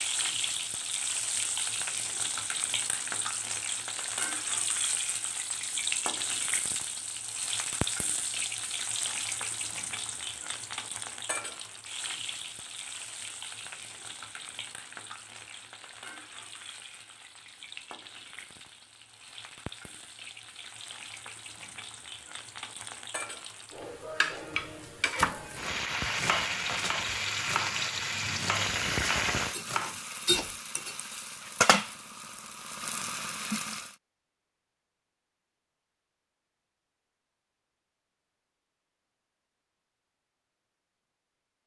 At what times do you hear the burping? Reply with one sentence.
You can't hear the burping here.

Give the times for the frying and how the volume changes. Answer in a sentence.
You can hear the frying from 0.0 to 34.0 s, getting quieter then louder.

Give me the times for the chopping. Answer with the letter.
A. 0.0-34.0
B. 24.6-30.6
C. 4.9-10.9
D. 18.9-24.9
B.